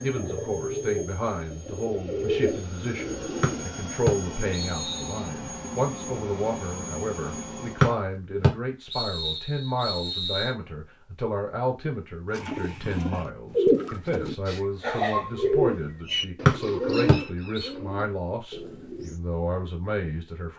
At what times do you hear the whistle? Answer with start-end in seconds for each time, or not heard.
3.4-5.2, 7.8-10.6, 16.4-17.7.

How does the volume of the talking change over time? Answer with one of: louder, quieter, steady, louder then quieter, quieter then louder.
steady.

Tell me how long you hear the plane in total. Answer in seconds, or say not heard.
8 s.